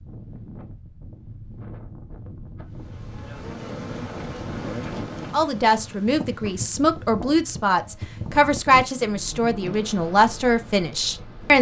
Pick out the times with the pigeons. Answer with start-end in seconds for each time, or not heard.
not heard.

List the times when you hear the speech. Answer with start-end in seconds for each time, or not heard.
5.3-11.5.